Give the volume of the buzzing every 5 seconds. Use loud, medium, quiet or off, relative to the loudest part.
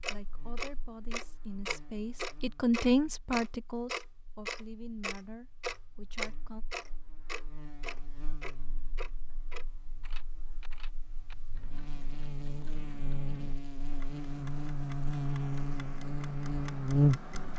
quiet, quiet, quiet, loud.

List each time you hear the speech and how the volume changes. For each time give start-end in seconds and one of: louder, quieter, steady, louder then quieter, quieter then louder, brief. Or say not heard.
0.1-6.7 louder then quieter.